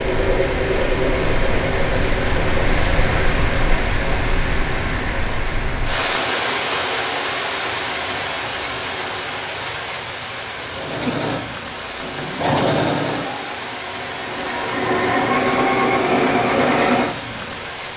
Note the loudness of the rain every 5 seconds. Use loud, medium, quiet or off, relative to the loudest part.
loud, loud, medium, medium.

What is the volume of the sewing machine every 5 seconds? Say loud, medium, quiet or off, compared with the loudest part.
medium, off, medium, loud.